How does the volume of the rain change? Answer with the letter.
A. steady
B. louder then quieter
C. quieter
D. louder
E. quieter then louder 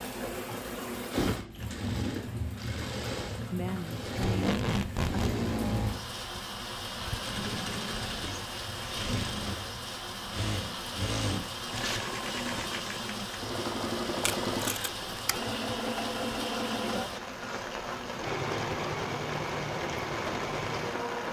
A.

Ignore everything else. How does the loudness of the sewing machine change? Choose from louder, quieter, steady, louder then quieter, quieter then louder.
steady.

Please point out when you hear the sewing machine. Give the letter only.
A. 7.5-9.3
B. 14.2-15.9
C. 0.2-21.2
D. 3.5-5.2
C.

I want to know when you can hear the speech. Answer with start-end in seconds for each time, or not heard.
3.5-5.2.